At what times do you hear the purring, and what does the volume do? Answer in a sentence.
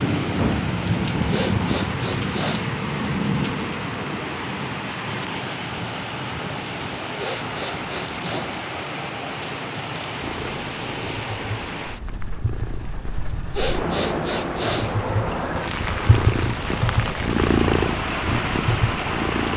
You can hear the purring from 10.2 to 19.5 s, getting louder.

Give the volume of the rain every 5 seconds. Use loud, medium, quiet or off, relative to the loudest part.
loud, medium, medium, loud.